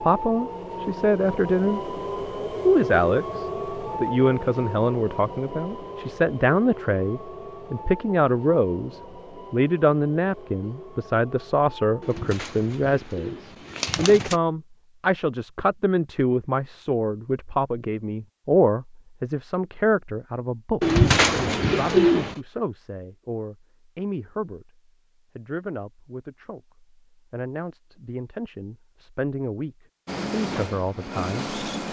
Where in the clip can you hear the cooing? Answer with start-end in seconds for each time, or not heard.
12.0-14.3, 20.8-22.4.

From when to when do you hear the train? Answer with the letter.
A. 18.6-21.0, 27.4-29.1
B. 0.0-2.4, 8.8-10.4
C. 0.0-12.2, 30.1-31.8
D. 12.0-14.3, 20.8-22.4
C.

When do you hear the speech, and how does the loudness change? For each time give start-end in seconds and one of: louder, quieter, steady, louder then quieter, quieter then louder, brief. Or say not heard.
0.0-1.9 brief
2.6-31.5 quieter.